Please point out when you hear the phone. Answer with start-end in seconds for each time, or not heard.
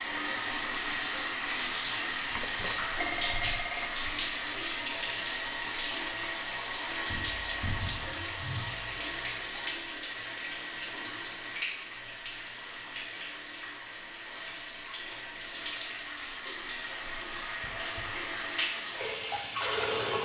2.3-3.9.